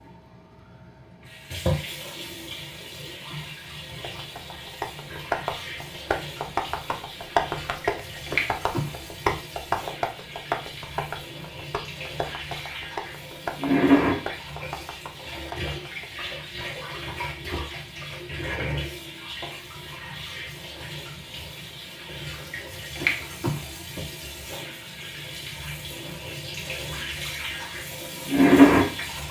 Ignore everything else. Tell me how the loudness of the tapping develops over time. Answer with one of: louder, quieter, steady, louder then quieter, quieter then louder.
quieter.